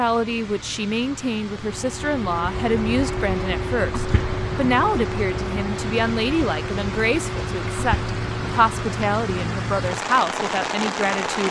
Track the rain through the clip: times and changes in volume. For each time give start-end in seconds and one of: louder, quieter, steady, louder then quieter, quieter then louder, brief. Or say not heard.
0.0-11.4 louder.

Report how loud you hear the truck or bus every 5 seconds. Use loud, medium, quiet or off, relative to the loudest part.
loud, loud, off.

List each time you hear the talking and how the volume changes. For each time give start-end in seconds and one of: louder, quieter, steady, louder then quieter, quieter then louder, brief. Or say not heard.
0.0-11.4 steady.